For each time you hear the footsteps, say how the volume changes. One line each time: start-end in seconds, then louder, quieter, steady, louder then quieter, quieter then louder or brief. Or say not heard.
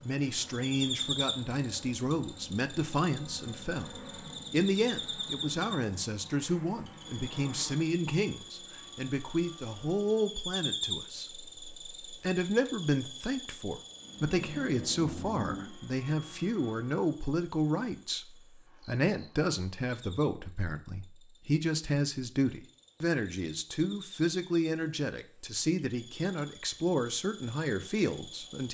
not heard.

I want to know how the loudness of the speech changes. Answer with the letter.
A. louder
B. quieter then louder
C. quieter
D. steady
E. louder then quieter
D.